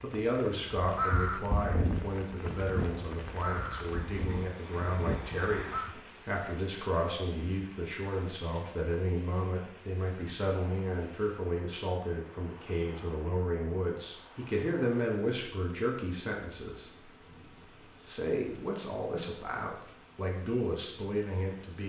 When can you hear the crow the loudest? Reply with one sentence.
The loudest moment of the crow is at 1 second.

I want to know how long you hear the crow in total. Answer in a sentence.
The crow can be heard for 5 seconds in total.